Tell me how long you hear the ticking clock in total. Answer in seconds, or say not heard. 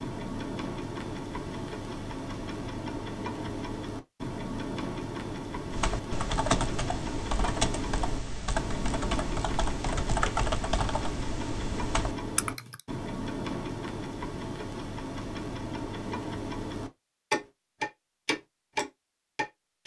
20 s.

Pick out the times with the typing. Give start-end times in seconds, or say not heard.
5.7-12.8.